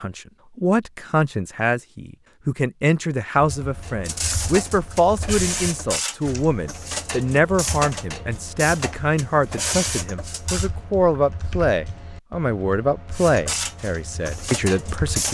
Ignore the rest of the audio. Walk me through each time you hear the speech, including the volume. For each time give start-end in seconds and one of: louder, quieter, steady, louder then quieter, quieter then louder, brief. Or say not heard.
0.0-15.3 steady.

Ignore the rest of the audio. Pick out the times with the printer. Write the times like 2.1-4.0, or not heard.
3.8-10.7, 13.1-15.3.